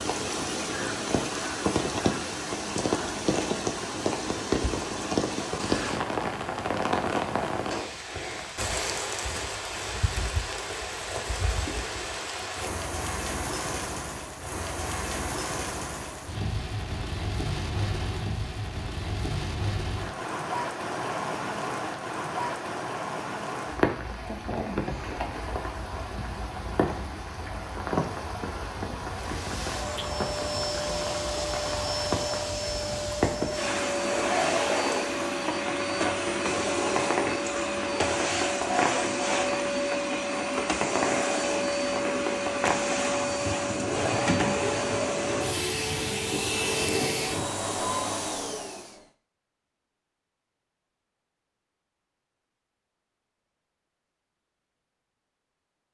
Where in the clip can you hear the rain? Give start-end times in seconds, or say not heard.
0.0-47.5.